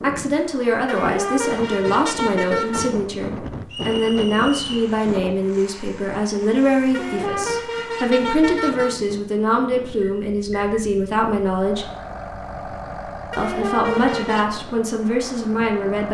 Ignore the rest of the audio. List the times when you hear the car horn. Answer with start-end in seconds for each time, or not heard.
0.8-3.0, 6.9-9.0, 13.3-14.5.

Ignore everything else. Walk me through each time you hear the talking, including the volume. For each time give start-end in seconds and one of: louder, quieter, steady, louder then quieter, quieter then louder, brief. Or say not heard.
0.0-11.9 steady
13.3-16.0 brief.